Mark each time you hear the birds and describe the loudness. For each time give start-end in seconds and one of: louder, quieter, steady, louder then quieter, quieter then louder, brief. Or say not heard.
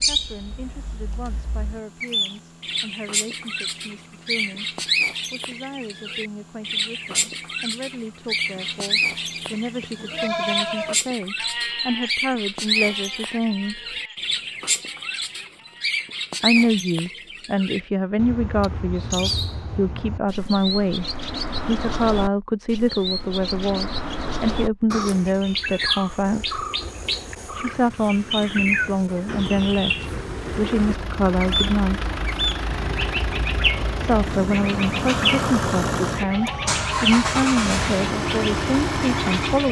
0.0-39.6 steady.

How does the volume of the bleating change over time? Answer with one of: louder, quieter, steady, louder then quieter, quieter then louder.
quieter.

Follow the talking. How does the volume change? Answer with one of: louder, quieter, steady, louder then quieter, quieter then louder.
louder.